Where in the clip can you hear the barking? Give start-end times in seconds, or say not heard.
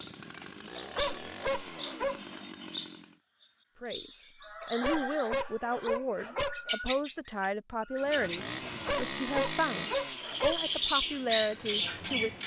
0.8-2.5, 4.6-6.8, 8.7-10.6.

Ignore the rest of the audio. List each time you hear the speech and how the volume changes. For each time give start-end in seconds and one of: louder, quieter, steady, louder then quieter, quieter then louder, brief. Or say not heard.
3.8-12.4 steady.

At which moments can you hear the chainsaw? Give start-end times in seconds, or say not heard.
0.0-3.2, 8.0-12.4.